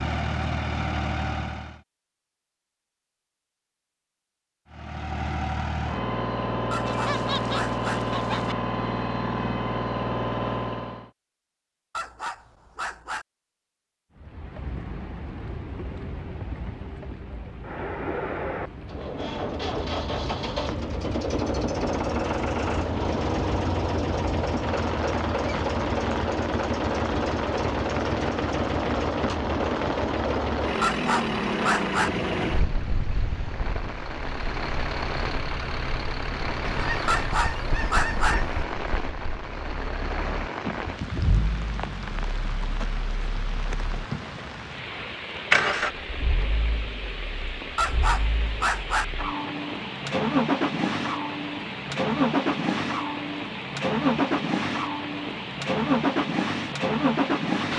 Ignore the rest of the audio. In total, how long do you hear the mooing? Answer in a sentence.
The mooing can't be heard in this clip.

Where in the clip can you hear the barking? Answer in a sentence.
The barking can be heard from 6.7 to 8.0 s, from 11.9 to 13.2 s, from 30.8 to 32.1 s, from 37.0 to 38.4 s and from 47.8 to 49.0 s.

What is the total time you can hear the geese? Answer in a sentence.
The geese can be heard for 4 seconds in total.